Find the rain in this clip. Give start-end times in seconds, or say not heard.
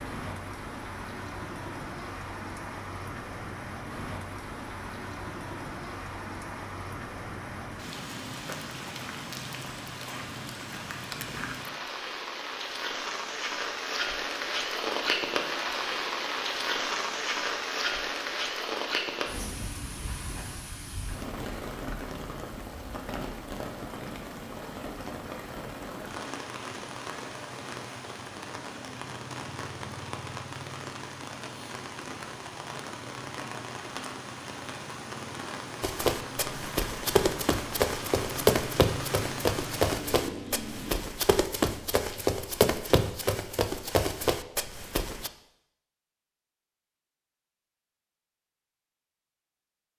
0.0-41.1.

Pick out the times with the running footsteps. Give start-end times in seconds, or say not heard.
35.8-45.3.